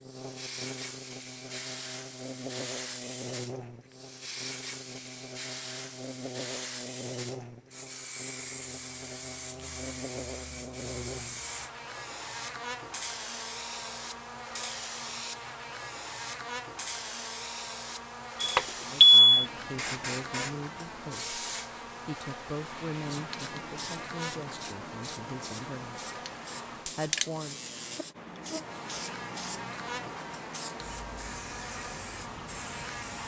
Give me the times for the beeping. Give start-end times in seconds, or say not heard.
18.4-19.4.